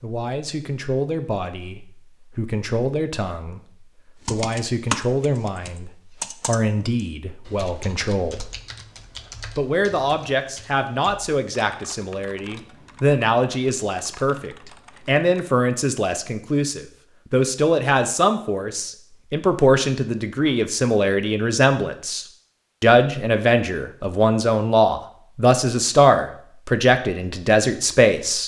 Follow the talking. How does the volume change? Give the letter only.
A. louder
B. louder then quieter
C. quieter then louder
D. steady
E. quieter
A.